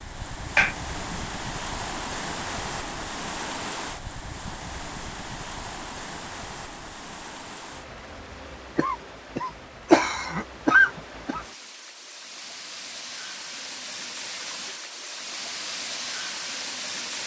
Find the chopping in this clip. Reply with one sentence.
The chopping can't be heard in this clip.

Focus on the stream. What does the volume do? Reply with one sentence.
The loudness of the stream goes down, then up.